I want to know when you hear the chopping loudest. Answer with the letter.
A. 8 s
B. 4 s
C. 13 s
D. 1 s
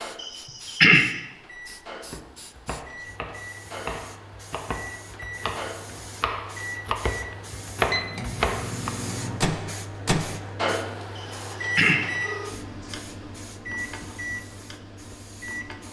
A.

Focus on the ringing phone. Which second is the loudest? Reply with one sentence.
The loudest moment of the ringing phone is at 1 second.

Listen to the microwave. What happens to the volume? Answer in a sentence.
The loudness of the microwave goes up, then down.